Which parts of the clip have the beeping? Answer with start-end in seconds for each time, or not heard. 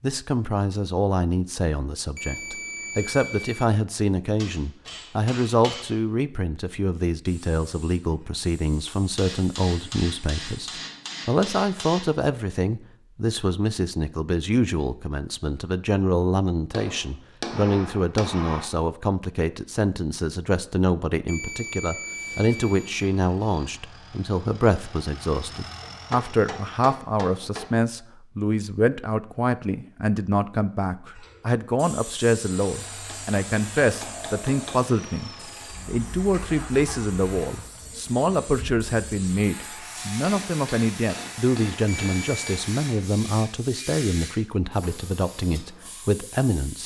2.1-3.6, 21.2-23.1, 41.9-42.6.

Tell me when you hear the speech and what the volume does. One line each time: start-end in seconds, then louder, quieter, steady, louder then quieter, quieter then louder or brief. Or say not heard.
0.0-46.8 steady.